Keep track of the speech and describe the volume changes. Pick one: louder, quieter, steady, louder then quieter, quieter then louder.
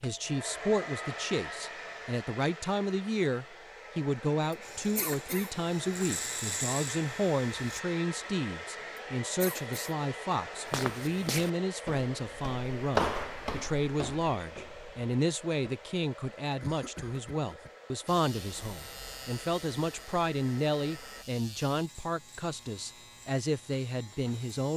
steady.